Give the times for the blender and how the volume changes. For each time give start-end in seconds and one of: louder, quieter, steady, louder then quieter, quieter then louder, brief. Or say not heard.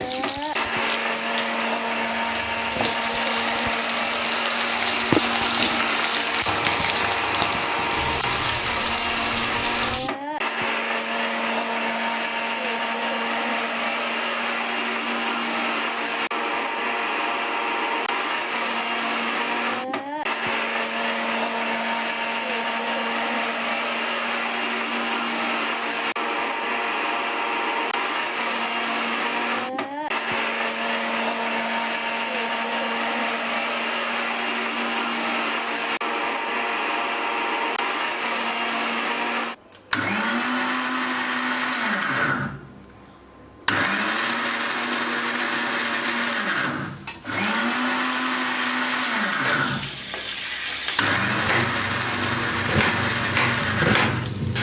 0.0-54.5 steady.